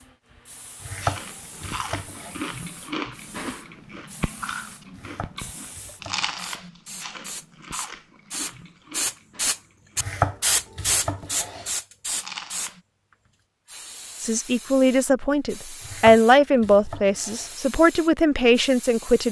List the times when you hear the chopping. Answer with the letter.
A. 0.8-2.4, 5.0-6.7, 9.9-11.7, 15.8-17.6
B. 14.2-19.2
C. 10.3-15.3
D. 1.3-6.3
A.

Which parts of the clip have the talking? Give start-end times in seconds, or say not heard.
14.2-19.2.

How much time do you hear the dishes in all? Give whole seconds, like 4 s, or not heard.
not heard.